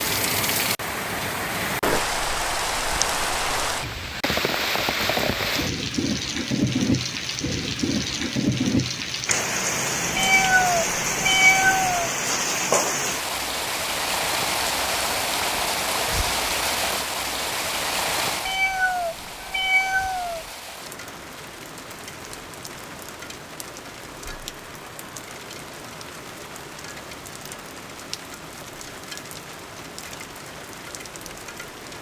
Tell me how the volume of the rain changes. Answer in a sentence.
The volume of the rain goes down.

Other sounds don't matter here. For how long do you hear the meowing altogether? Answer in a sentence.
You can hear the meowing for 4 seconds altogether.